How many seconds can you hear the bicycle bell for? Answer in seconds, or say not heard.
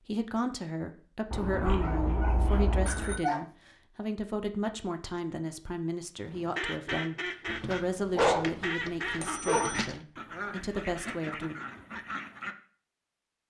2 s.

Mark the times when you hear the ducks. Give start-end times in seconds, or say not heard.
6.2-12.6.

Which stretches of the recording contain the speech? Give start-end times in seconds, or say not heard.
0.1-11.6.